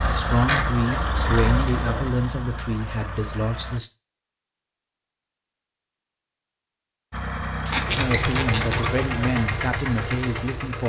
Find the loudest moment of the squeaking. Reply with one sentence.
The volume of the squeaking peaks at 8 seconds.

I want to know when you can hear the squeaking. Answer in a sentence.
You can hear the squeaking from 0.8 to 2.0 s and from 7.7 to 8.9 s.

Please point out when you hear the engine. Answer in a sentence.
The engine can be heard from 0.0 to 3.8 s and from 7.1 to 10.8 s.